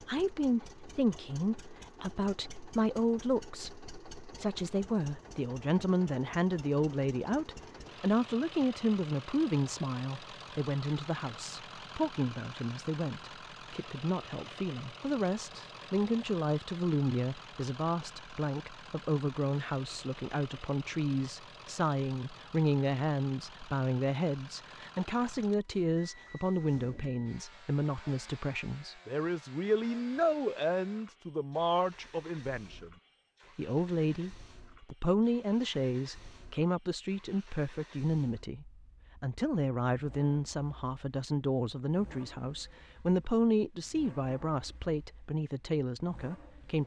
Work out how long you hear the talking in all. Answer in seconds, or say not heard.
46 s.